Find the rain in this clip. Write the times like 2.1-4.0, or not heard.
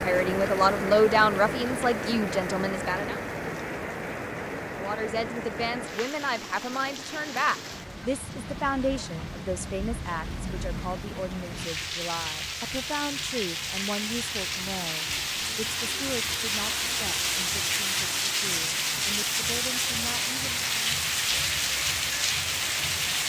0.0-23.2.